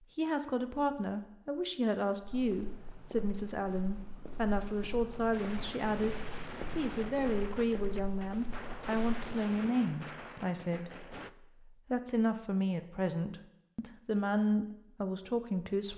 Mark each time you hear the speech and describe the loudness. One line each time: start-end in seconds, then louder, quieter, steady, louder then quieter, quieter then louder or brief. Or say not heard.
0.1-15.9 steady.